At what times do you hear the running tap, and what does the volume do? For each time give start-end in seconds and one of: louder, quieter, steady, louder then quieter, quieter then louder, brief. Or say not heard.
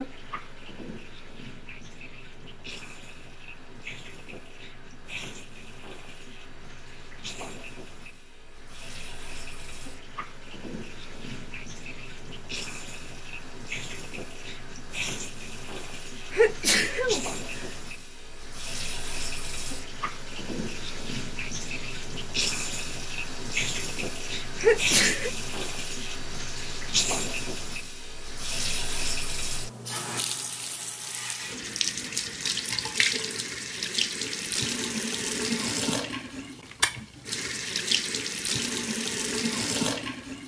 0.0-40.4 louder.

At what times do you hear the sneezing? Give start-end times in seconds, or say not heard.
16.3-17.6, 24.6-25.3.